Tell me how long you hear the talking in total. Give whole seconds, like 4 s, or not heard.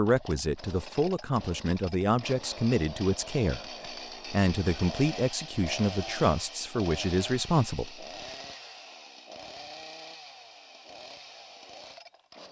8 s.